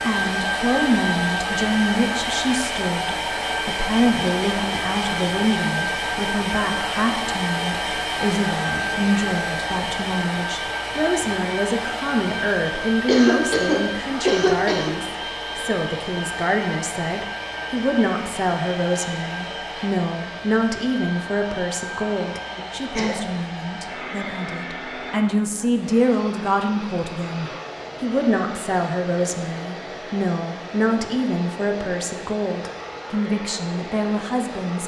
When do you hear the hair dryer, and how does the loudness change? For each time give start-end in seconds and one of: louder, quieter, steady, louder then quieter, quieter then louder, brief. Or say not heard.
0.0-34.8 quieter.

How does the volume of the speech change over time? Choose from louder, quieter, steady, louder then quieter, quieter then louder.
steady.